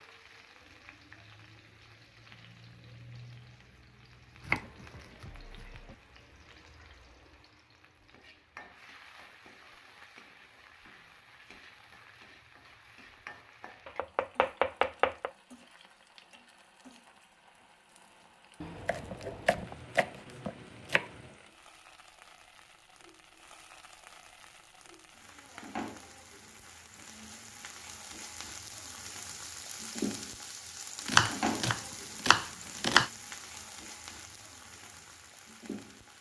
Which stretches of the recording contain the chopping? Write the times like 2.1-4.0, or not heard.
4.4-6.0, 13.8-15.3, 18.6-21.1, 31.1-33.1.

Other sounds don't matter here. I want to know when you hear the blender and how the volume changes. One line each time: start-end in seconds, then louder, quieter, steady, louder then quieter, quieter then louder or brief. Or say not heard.
not heard.